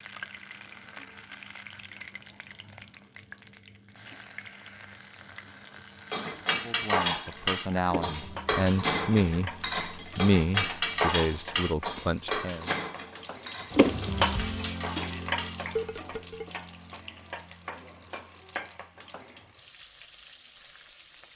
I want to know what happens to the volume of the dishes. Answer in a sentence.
The loudness of the dishes goes down.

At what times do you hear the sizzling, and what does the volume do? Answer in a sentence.
You can hear the sizzling from 0.0 to 21.3 s, getting louder then quieter.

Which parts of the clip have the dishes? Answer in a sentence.
You can hear the dishes from 6.1 to 16.5 s.